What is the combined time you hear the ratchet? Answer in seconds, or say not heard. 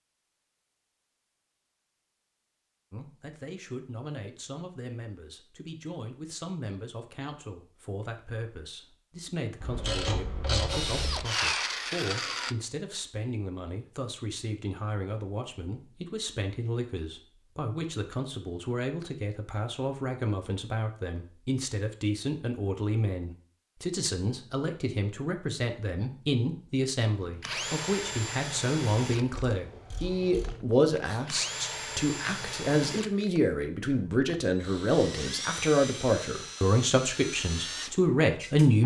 3 s.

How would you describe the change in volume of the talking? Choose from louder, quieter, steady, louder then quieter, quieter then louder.
louder.